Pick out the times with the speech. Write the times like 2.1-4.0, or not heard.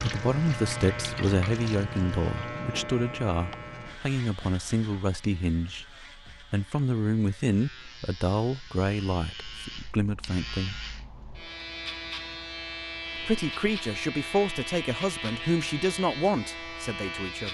0.0-5.8, 6.5-10.8, 13.2-17.4.